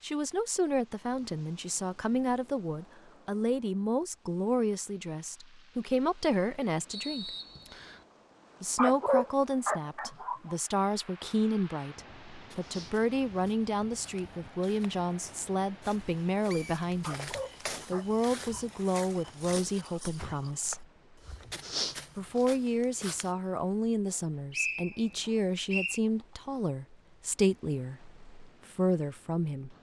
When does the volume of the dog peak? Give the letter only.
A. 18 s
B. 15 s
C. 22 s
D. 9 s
D.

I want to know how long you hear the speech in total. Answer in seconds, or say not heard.
27 s.